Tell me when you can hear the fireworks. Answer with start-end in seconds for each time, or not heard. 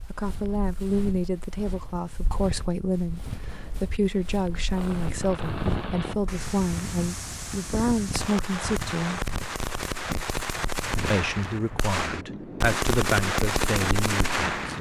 4.7-14.7.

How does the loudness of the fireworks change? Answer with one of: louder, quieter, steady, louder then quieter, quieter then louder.
louder.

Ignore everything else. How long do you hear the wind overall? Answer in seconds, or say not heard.
9 s.